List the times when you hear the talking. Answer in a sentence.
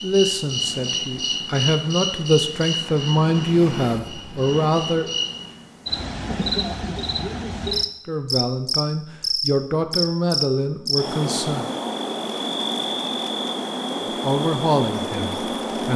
You can hear the talking from 0.0 to 5.1 s, from 8.1 to 11.7 s and from 14.2 to 15.9 s.